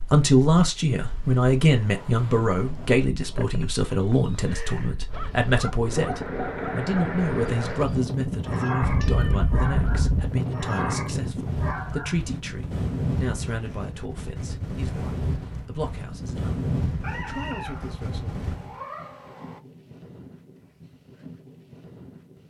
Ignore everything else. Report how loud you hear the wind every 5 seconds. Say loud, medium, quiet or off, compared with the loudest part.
quiet, loud, loud, loud, quiet.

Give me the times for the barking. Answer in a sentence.
The barking can be heard from 5.0 to 12.3 s.